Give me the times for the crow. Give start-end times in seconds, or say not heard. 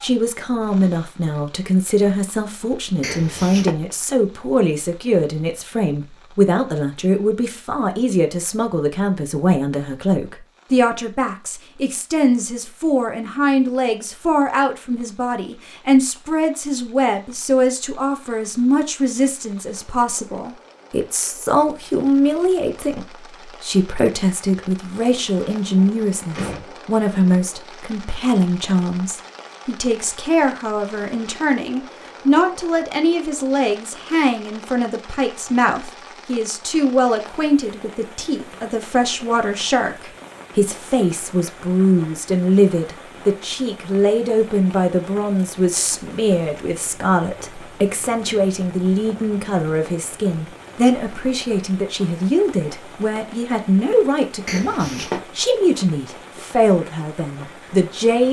not heard.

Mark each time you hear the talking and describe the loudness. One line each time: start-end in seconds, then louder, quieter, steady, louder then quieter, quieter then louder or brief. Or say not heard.
0.0-58.2 steady.